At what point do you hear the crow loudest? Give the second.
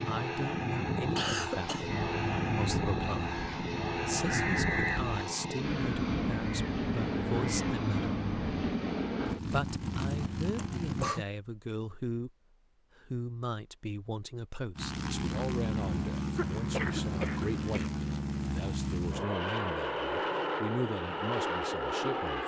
5 s.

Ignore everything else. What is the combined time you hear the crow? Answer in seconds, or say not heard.
7 s.